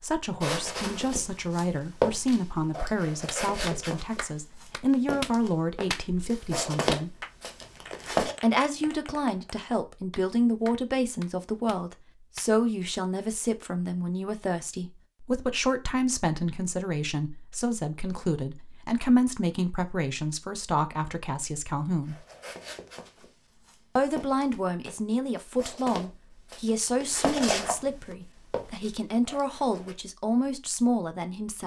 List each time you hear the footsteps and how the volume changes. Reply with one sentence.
The footsteps can be heard from 0.4 to 8.3 s, getting quieter then louder; and from 22.1 to 29.9 s, getting louder then quieter.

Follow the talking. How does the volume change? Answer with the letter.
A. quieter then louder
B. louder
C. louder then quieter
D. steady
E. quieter
D.